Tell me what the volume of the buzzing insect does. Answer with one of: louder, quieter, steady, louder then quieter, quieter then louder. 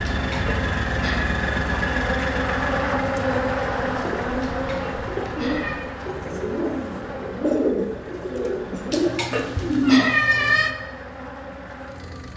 quieter.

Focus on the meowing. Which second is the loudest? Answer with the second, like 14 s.
10 s.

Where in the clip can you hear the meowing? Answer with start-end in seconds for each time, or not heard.
0.1-1.4, 4.4-5.8, 8.9-10.8.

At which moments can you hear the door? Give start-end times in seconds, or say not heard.
not heard.